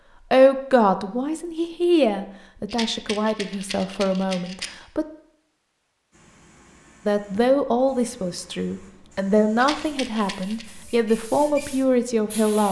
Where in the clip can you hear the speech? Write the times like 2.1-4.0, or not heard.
0.3-5.0, 7.0-12.6.